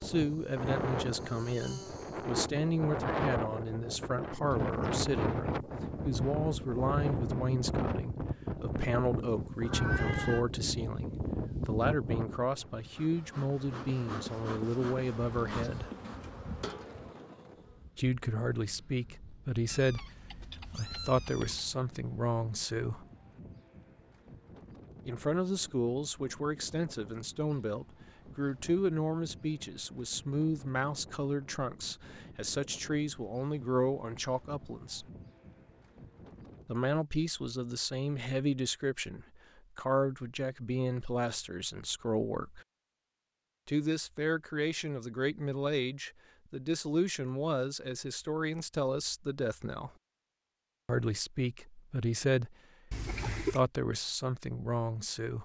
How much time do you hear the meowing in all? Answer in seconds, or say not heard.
4 s.